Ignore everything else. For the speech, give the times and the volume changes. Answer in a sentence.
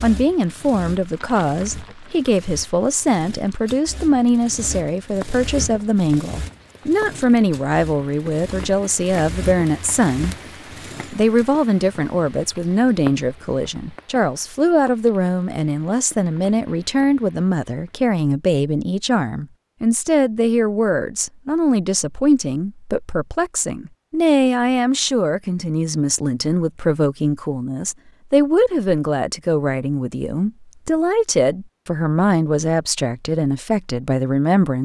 You can hear the speech from 0.0 to 10.3 s, at a steady volume; and from 11.1 to 34.8 s, at a steady volume.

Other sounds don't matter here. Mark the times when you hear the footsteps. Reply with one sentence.
The footsteps can't be heard in this clip.